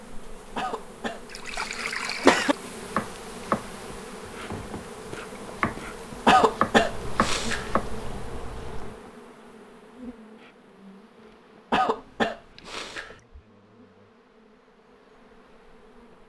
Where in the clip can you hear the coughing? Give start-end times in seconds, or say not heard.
0.6-2.5, 6.2-7.7, 11.7-13.2.